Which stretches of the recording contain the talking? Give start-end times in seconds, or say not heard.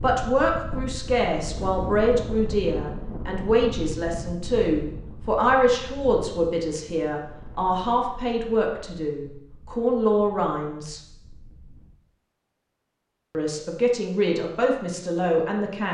0.0-11.0, 13.3-15.8.